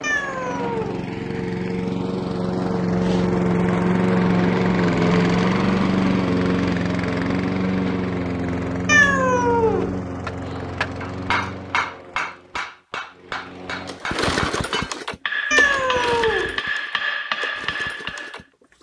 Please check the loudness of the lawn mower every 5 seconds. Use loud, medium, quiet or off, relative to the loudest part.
loud, loud, medium, quiet.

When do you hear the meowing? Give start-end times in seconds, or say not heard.
0.0-1.1, 8.8-10.0, 15.5-16.6.